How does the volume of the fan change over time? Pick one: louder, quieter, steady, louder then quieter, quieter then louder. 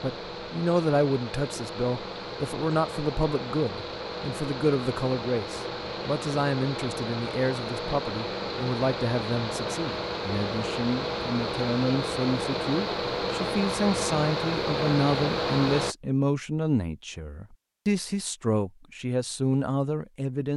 louder.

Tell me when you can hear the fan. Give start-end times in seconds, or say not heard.
0.0-15.9.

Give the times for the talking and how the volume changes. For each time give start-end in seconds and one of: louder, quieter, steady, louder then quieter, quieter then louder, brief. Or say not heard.
0.0-20.5 steady.